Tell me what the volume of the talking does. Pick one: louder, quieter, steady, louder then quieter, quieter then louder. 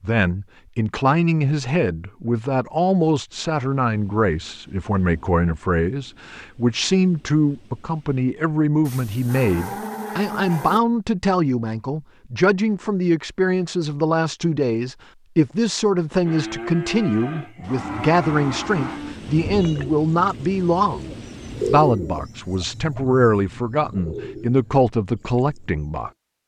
steady.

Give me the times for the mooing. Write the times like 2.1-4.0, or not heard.
8.8-10.8, 16.2-19.1.